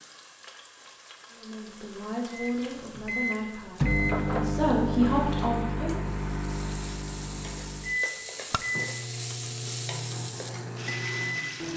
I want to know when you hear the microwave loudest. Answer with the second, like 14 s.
4 s.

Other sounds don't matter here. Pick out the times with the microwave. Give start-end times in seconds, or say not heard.
2.3-11.7.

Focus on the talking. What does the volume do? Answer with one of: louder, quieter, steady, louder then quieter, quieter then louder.
louder.